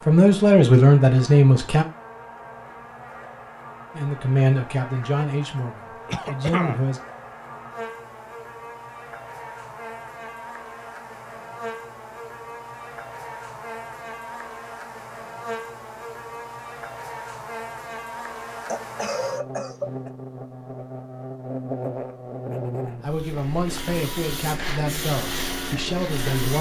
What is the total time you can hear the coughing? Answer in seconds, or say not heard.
2 s.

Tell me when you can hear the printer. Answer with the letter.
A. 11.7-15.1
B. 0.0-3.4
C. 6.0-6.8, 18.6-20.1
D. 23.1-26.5
D.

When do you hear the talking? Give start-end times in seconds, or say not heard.
0.1-1.9, 4.0-7.0, 23.0-26.5.